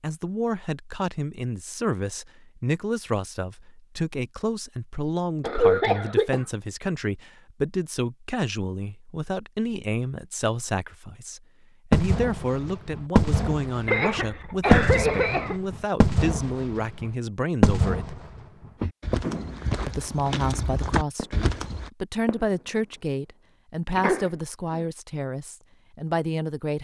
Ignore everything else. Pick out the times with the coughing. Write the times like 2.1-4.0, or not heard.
5.4-6.5, 13.8-15.6, 23.9-24.8.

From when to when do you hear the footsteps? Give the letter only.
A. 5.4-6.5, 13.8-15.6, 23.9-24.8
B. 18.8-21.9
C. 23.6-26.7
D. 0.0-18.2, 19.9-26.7
B.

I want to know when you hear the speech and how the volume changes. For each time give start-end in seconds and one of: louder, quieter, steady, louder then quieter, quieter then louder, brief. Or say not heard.
0.0-18.2 steady
19.9-26.7 steady.